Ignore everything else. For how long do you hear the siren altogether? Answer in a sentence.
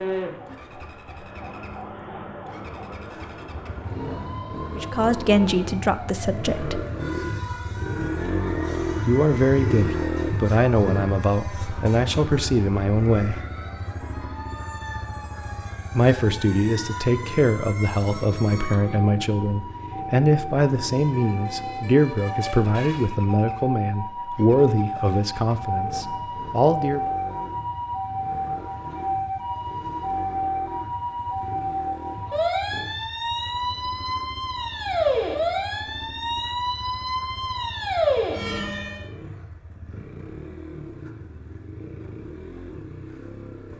You can hear the siren for 39 seconds altogether.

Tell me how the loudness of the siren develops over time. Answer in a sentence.
The loudness of the siren goes up.